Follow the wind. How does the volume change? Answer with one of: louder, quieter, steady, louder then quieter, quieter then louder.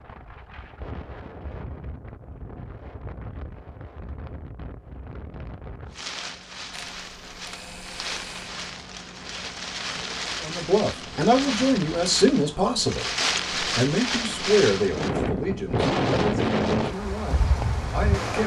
louder.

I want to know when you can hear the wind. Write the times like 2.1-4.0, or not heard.
0.0-18.4.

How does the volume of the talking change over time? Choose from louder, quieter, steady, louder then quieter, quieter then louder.
quieter.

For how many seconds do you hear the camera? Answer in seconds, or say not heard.
2 s.